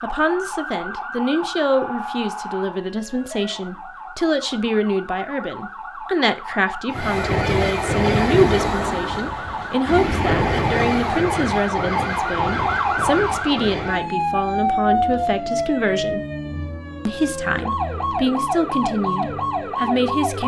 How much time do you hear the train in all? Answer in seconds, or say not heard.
7 s.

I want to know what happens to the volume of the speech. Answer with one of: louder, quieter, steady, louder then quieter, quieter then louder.
steady.